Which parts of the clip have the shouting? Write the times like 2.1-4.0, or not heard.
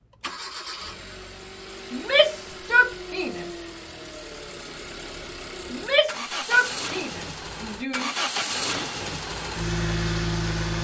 1.9-3.5, 5.7-8.1.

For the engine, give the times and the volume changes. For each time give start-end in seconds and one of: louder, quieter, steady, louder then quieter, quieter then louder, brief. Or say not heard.
0.0-10.7 louder.